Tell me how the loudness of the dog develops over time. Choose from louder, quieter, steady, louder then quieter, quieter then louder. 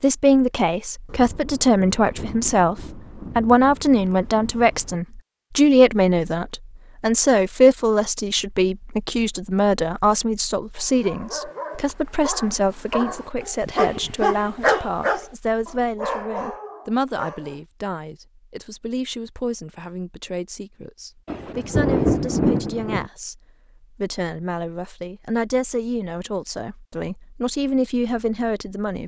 louder then quieter.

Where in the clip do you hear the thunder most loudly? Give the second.
22 s.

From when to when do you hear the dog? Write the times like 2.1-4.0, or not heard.
10.8-17.6.